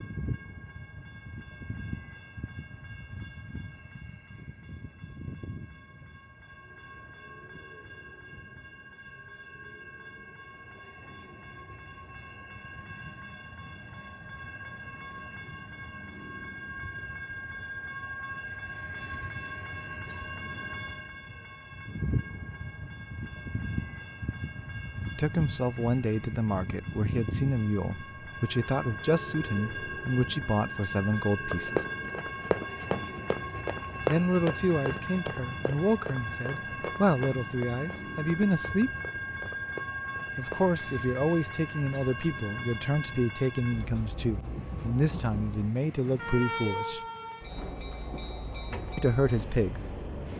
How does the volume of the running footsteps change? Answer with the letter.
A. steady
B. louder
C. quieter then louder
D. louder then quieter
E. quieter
E.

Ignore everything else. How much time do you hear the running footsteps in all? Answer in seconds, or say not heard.
9 s.